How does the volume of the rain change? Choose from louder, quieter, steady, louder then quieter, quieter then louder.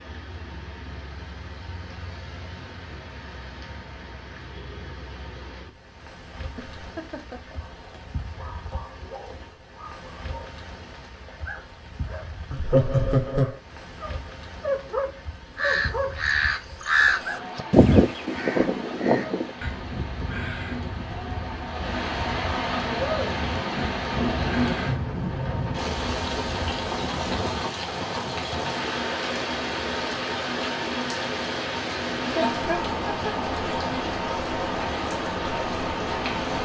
louder.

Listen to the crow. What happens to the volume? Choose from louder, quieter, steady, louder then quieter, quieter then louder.
quieter.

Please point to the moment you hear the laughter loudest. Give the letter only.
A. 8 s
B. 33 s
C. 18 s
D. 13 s
D.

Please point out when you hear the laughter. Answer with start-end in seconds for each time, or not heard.
6.5-7.6, 12.5-13.6, 32.4-33.3.